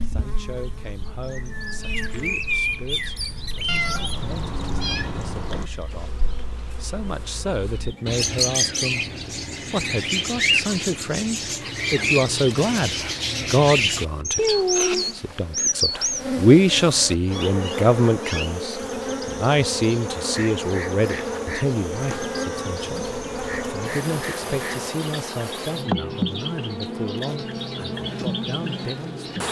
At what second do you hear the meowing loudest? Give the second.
15 s.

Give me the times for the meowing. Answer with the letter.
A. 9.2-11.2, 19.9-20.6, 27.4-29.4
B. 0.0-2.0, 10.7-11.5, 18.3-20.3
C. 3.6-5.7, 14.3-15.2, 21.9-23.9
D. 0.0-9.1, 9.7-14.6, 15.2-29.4
C.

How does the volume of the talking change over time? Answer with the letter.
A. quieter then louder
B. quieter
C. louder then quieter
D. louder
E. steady
C.